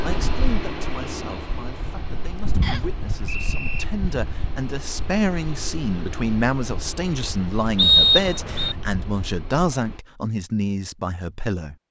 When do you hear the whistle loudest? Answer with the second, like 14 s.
8 s.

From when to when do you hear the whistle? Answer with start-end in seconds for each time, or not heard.
2.6-3.9, 7.8-8.8.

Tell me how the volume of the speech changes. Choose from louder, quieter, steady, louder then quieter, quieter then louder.
louder.